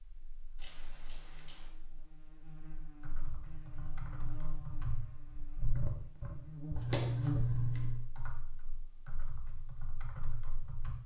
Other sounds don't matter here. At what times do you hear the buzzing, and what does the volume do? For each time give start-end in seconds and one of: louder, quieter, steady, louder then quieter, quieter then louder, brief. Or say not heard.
0.0-7.5 louder.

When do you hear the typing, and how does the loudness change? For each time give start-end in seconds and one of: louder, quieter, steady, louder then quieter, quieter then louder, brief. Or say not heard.
2.6-10.9 louder then quieter.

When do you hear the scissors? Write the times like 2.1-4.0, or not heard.
0.6-1.6, 6.8-8.0.